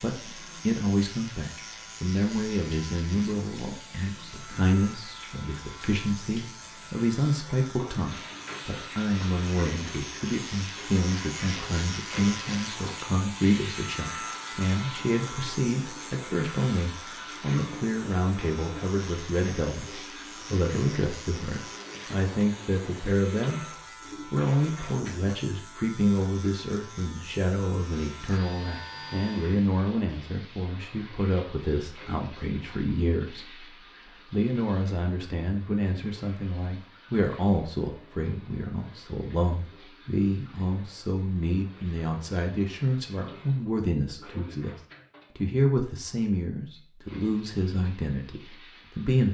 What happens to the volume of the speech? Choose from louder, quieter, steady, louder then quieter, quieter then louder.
steady.